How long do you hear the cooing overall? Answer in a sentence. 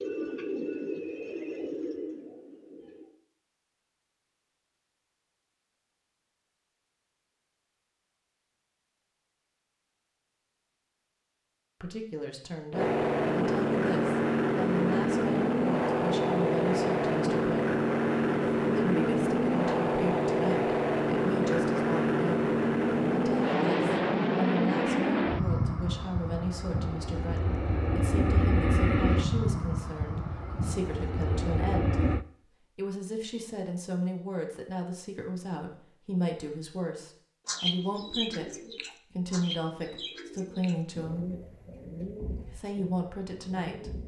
You can hear the cooing for 10 seconds altogether.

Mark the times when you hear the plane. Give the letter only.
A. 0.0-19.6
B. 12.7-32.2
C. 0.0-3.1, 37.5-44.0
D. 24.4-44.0
B.